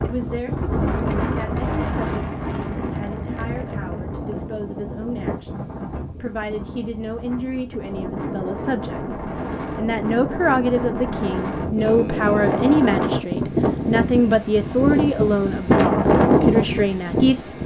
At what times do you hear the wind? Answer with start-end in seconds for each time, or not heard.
0.0-17.6.